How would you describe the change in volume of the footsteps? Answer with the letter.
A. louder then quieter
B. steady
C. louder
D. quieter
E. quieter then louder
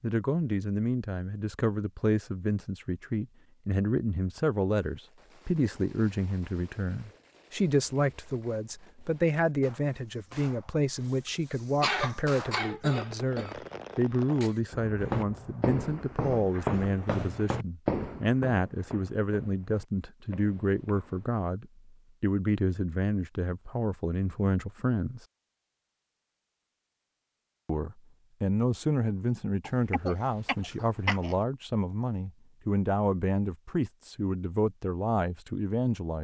D.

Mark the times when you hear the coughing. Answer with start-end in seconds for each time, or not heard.
11.8-13.6, 29.6-31.4.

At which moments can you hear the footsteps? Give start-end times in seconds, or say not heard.
15.0-21.4.